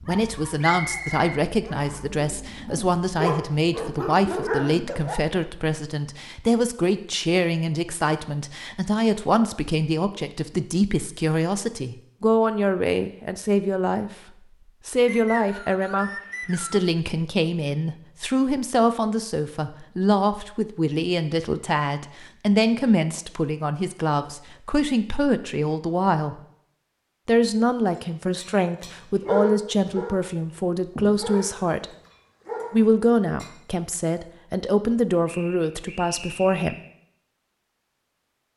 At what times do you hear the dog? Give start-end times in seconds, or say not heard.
0.0-5.2, 27.9-33.5.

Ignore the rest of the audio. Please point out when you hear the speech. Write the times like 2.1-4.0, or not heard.
0.1-14.1, 14.8-26.4, 27.2-31.9, 32.7-36.8.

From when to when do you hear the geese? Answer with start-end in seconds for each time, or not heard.
not heard.